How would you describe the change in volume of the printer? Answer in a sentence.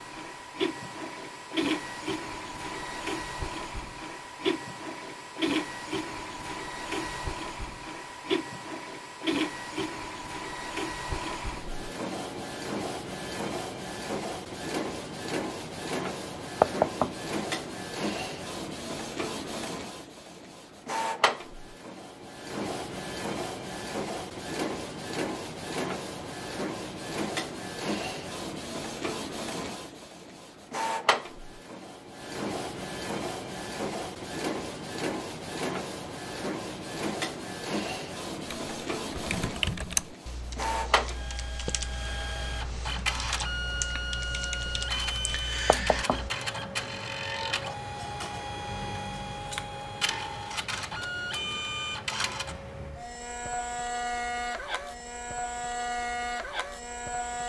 The loudness of the printer stays about the same.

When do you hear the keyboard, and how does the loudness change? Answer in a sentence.
You can hear the keyboard from 38.5 to 46.3 s, getting quieter then louder.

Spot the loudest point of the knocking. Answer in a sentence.
The loudest moment of the knocking is at 17 seconds.